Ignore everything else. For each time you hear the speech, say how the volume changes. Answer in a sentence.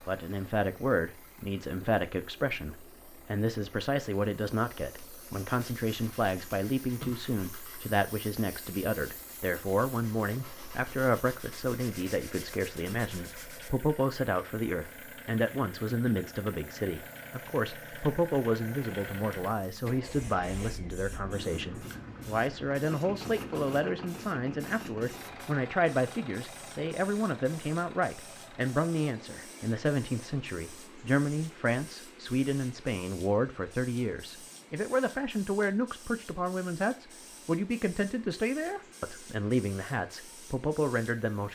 You can hear the speech from 0.1 to 41.4 s, at a steady volume.